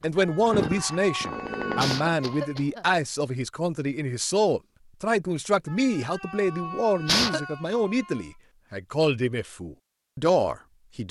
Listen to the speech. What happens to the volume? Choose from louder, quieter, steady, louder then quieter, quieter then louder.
steady.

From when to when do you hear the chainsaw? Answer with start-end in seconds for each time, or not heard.
0.0-2.1.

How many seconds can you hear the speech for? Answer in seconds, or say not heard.
11 s.